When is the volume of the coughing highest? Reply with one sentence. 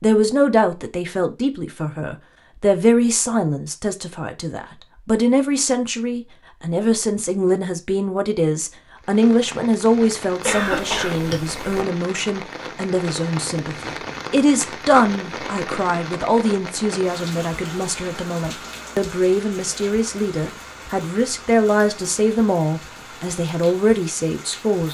The volume of the coughing peaks at 11 seconds.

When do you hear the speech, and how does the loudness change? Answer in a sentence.
The speech can be heard from 0.0 to 24.8 s, at a steady volume.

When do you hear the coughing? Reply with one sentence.
The coughing can be heard from 10.4 to 11.8 s.